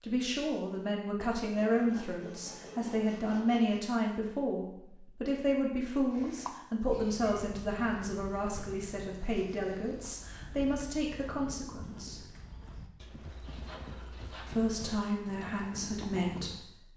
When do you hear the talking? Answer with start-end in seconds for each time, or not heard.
0.0-12.2, 14.4-16.6.